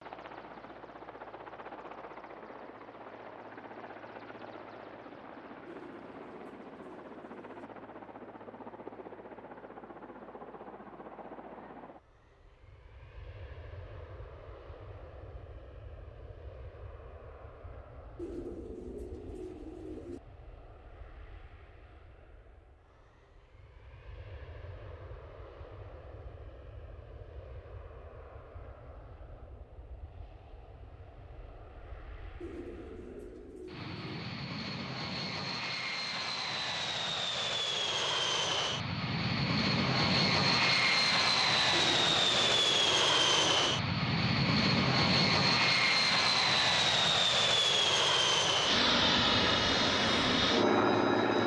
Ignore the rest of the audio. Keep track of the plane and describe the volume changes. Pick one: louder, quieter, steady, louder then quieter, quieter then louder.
quieter then louder.